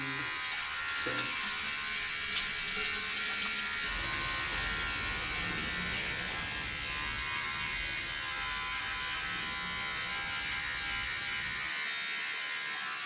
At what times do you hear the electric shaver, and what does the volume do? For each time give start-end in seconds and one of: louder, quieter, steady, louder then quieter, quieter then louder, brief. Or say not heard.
0.0-13.0 steady.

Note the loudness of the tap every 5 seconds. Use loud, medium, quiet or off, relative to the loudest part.
loud, loud, medium.